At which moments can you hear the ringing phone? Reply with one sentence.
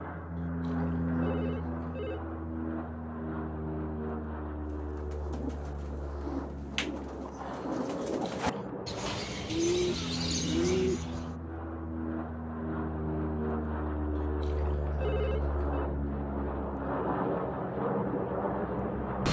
The ringing phone can be heard from 0.4 to 2.2 s, from 8.2 to 8.7 s and from 14.2 to 15.9 s.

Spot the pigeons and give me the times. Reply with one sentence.
You can hear the pigeons from 4.8 to 11.3 s.